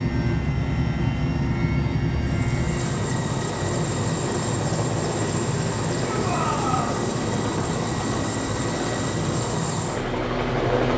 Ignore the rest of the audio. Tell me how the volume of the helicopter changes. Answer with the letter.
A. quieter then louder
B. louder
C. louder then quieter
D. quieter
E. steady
E.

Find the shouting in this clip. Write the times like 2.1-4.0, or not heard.
6.0-7.0.